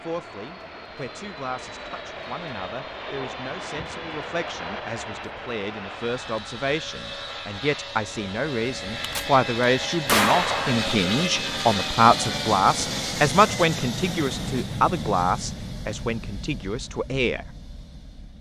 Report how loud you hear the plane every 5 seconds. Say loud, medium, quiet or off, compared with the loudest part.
medium, medium, loud, medium.